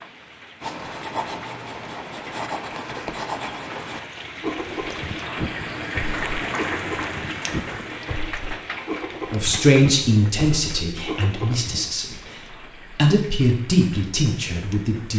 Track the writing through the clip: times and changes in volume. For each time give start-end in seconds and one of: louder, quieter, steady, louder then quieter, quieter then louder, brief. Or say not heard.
0.6-11.9 steady.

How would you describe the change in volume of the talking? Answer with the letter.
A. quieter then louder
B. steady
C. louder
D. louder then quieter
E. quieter
A.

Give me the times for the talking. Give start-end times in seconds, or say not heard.
9.3-15.1.